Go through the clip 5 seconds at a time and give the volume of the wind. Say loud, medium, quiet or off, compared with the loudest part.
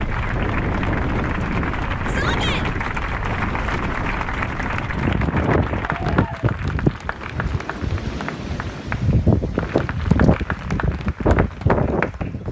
medium, loud, loud.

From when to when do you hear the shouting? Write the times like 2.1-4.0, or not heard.
2.0-2.6.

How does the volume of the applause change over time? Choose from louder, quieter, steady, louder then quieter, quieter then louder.
quieter.